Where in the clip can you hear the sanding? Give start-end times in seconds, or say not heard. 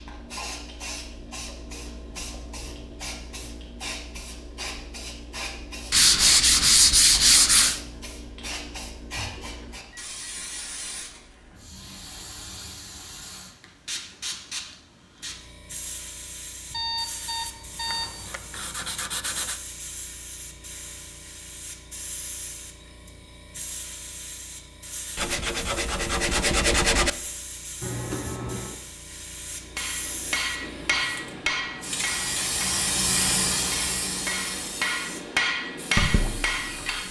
5.9-7.8, 17.9-19.6, 25.1-27.1.